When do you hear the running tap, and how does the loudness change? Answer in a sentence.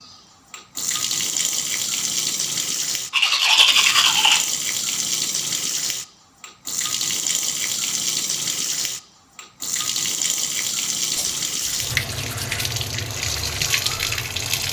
You can hear the running tap from 0.0 to 14.6 s, at a steady volume.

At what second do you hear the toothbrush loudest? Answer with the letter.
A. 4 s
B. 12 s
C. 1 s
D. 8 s
A.